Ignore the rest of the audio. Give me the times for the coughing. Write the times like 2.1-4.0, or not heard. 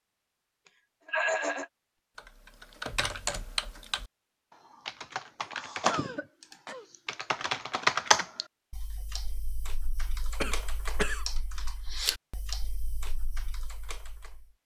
1.1-1.6, 5.8-6.8, 10.4-11.2.